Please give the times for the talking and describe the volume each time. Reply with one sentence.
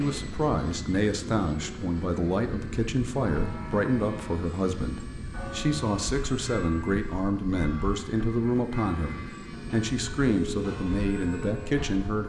You can hear the talking from 0.0 to 12.2 s, at a steady volume.